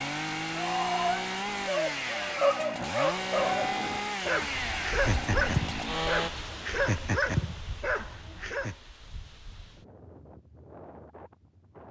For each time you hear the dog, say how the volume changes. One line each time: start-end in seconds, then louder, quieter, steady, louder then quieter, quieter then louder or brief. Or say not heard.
0.6-8.8 steady.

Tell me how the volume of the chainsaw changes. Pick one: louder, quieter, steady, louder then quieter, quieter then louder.
steady.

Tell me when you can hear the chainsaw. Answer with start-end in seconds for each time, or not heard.
0.0-6.3.